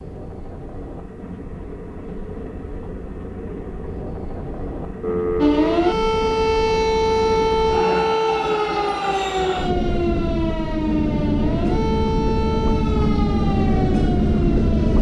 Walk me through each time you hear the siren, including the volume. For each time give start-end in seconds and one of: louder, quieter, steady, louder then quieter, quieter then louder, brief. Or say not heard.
5.4-14.9 quieter.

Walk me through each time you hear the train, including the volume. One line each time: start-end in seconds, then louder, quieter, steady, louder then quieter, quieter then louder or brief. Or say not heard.
0.0-14.9 louder.